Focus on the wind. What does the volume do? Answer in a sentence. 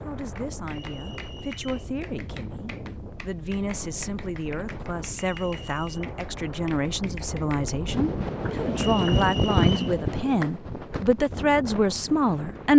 The loudness of the wind goes up, then down.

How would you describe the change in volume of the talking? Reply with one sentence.
The loudness of the talking goes up.